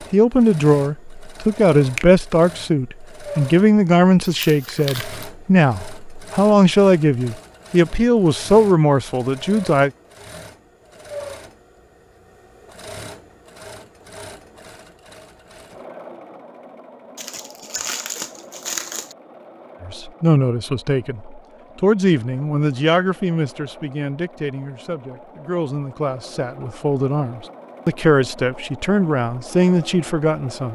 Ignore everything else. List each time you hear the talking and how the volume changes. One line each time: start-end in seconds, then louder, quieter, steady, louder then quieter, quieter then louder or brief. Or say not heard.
0.1-9.9 steady
19.8-30.6 quieter then louder.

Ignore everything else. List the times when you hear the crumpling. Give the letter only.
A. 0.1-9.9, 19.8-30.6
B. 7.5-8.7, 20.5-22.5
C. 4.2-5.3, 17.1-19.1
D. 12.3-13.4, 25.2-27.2
C.